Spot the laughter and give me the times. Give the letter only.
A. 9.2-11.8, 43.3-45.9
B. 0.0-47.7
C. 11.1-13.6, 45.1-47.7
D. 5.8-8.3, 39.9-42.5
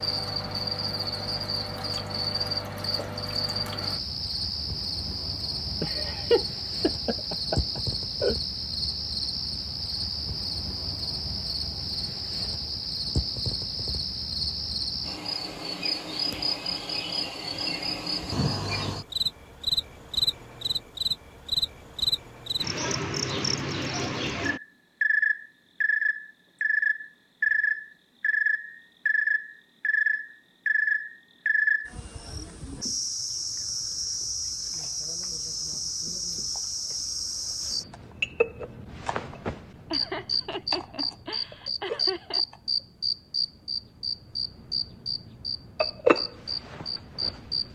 D.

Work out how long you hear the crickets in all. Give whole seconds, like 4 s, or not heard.
48 s.